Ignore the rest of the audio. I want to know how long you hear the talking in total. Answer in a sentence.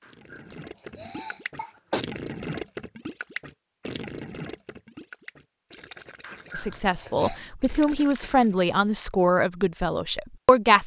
The talking can be heard for 4 seconds in total.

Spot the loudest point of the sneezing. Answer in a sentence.
The loudest moment of the sneezing is at 2 seconds.